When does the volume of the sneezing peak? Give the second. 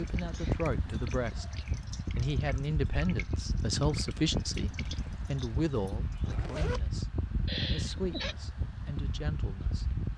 8 s.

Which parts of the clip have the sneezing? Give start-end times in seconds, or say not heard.
0.1-0.7, 7.5-8.3.